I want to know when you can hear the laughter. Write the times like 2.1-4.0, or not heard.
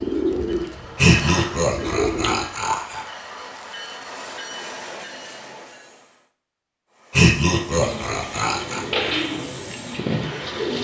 0.9-3.0, 7.1-8.8.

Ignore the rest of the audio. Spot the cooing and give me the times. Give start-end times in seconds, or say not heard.
0.0-2.5, 7.7-10.8.